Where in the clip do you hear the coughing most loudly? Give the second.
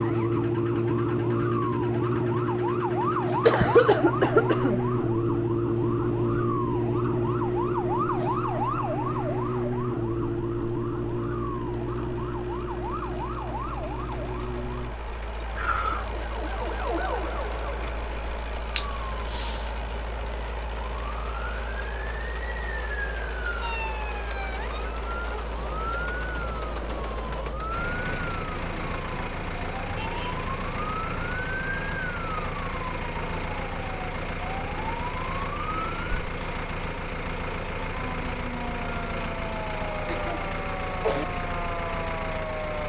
4 s.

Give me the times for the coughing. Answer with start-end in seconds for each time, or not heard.
3.5-4.8, 15.6-16.2, 40.0-41.2.